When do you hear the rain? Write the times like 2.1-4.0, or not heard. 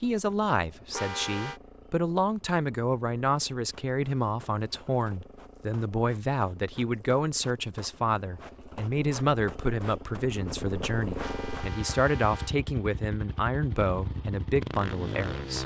not heard.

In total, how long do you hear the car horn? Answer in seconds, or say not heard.
2 s.